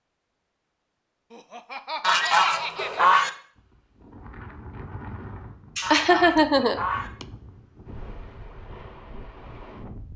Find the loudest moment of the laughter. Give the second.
6 s.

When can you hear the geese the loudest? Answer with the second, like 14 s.
3 s.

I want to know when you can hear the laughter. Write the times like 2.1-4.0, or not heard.
1.3-3.0, 5.8-7.2.